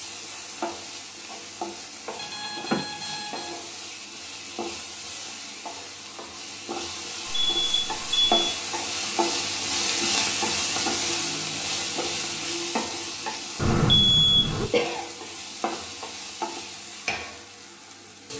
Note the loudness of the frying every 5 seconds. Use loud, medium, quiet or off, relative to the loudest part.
medium, loud, loud, medium.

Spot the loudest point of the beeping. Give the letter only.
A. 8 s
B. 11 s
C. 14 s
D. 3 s
C.